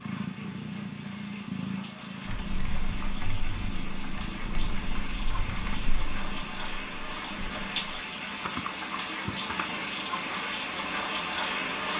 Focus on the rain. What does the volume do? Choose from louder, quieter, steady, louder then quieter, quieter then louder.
louder.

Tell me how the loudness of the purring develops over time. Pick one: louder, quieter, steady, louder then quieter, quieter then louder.
quieter.